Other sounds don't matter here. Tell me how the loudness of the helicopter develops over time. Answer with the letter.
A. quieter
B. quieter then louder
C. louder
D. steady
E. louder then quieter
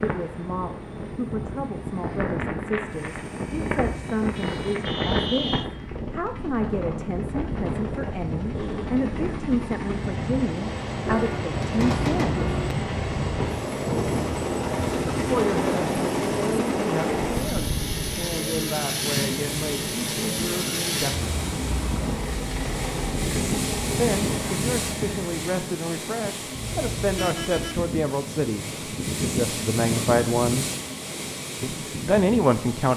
C.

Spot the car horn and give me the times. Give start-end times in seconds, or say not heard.
4.3-5.7, 11.1-12.7, 26.6-27.9.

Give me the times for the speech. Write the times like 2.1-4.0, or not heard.
0.0-12.3, 15.2-21.4, 23.9-30.6, 31.6-32.9.